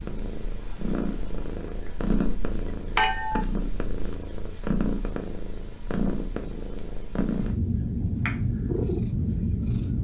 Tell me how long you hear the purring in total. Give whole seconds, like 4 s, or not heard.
10 s.